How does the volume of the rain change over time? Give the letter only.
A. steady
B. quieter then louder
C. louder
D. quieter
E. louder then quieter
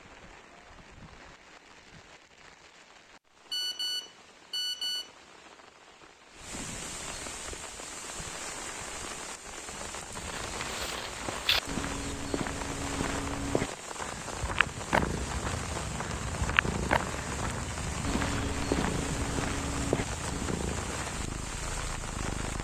C.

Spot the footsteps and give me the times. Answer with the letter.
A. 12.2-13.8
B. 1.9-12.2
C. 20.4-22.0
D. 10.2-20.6
D.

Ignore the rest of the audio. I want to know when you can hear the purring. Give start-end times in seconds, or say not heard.
14.9-22.5.